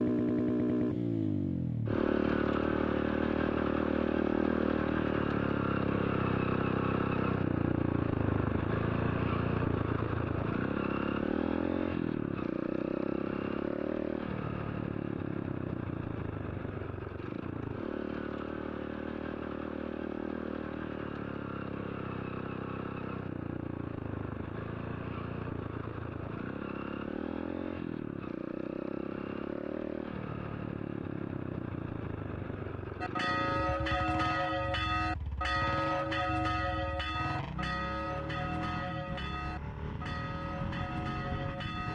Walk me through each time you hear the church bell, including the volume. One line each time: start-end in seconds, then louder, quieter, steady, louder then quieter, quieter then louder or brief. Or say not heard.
33.0-41.9 quieter.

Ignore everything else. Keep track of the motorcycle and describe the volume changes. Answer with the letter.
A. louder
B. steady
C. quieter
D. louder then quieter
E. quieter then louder
C.